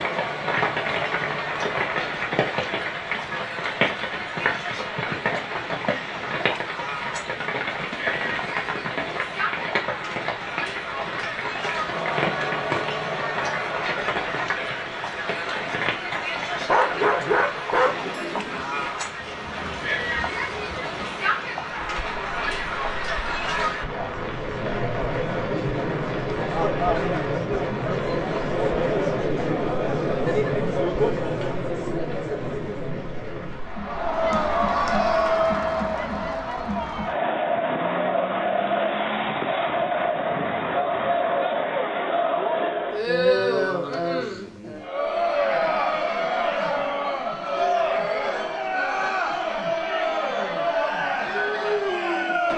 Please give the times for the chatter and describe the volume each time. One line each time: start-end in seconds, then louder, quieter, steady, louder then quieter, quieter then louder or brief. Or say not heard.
0.0-52.5 louder.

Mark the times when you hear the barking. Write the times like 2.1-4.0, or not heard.
16.6-18.1.